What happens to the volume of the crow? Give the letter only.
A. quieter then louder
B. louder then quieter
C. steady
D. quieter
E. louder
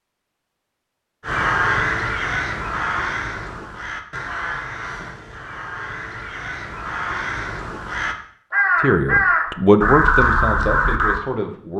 A.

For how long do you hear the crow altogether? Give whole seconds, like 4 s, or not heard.
10 s.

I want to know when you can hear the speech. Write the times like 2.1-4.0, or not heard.
8.8-11.7.